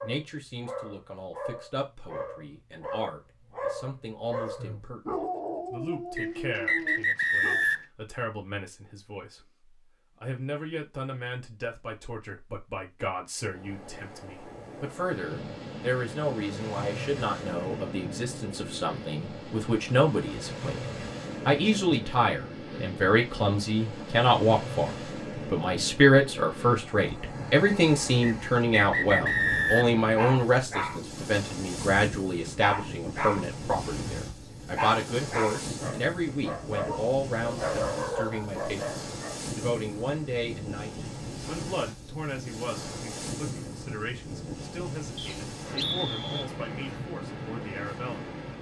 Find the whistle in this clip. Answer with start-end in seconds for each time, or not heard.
6.2-7.8, 28.2-29.9, 45.1-46.5.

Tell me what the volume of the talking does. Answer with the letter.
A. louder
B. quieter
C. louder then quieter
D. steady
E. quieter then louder
C.